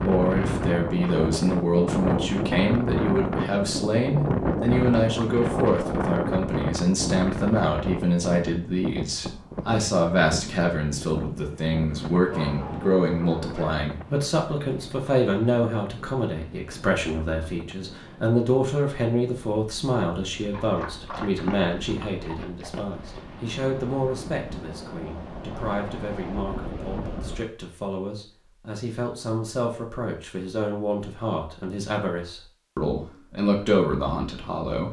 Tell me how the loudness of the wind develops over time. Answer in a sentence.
The loudness of the wind goes down, then up.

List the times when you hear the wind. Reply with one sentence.
You can hear the wind from 0.0 to 27.4 s.